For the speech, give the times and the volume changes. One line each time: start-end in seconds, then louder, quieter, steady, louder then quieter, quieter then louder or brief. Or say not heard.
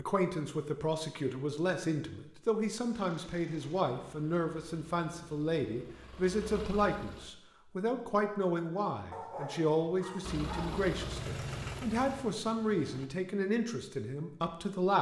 0.0-14.9 steady.